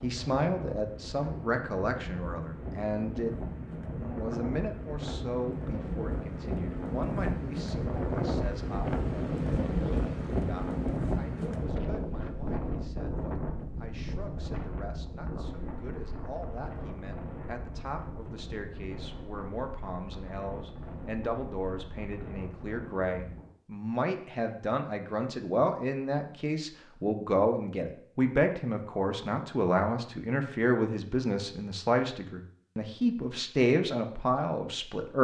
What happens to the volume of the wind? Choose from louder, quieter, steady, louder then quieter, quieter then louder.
louder then quieter.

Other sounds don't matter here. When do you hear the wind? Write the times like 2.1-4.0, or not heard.
0.0-23.5.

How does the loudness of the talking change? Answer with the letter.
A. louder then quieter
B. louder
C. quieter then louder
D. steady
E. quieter
C.